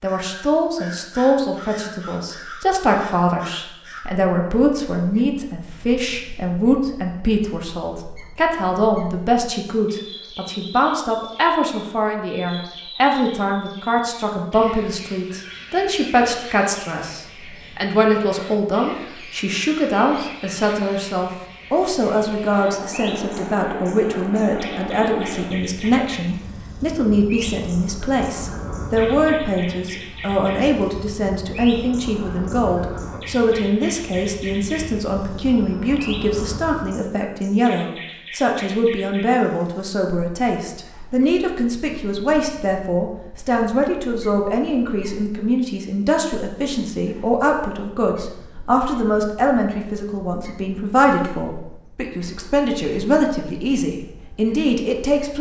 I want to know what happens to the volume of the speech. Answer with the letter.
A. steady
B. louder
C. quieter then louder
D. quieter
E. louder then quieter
A.